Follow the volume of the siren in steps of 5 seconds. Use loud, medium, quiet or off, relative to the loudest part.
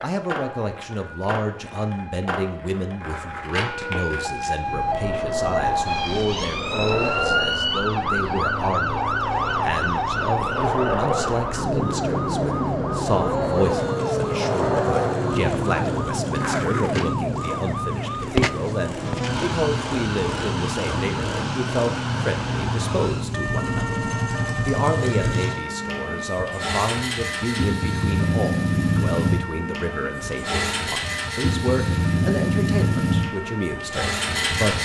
medium, loud, loud, loud, medium, medium, medium.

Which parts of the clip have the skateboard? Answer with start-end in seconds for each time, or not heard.
0.0-17.1.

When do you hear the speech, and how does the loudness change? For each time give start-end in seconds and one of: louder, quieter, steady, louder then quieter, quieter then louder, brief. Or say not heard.
0.0-34.8 steady.